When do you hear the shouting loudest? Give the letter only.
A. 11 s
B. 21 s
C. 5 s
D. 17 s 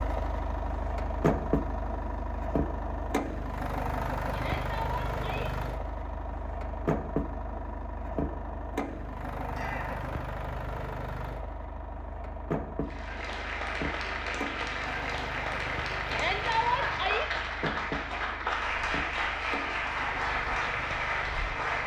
D.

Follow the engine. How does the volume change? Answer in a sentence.
The loudness of the engine goes down.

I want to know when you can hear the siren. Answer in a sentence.
You can't hear the siren here.